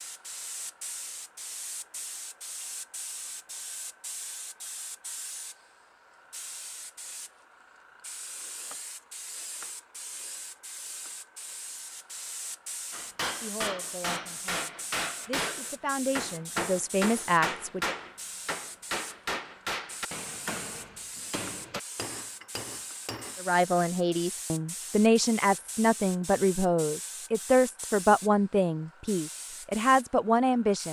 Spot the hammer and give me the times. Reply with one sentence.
You can hear the hammer from 12.9 to 23.7 s.